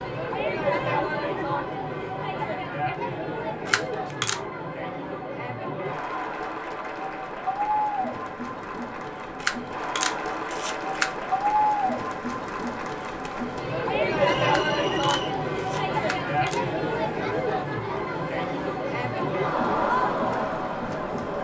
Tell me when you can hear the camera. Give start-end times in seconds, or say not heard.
3.6-4.4, 9.4-11.1, 14.4-16.6.